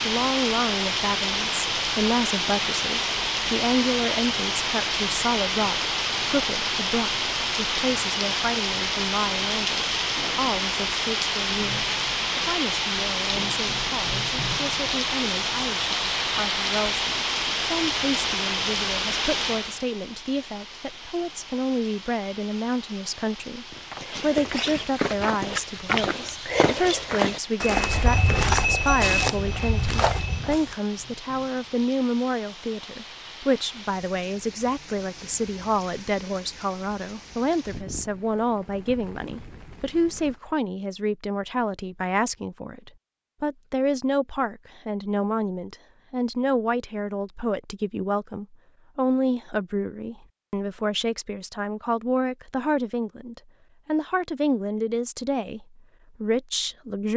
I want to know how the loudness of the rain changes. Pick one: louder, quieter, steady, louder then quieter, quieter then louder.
quieter.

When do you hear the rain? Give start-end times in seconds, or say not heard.
0.0-40.4.